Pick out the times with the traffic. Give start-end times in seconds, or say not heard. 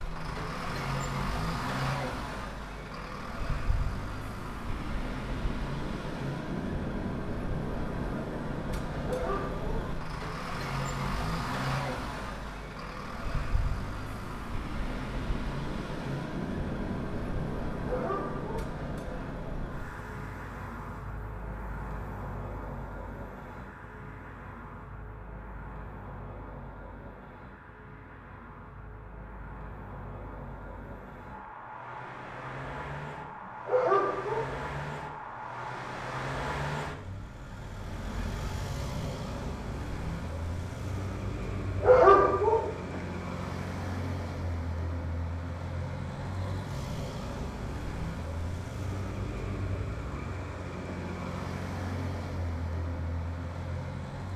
0.0-54.3.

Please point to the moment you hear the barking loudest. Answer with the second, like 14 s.
42 s.